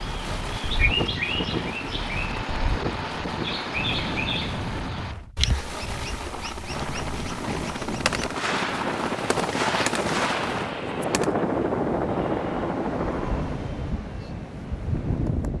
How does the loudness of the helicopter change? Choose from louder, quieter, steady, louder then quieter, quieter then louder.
louder.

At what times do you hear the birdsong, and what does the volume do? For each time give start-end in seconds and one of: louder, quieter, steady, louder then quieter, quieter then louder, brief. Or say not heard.
0.0-8.4 quieter.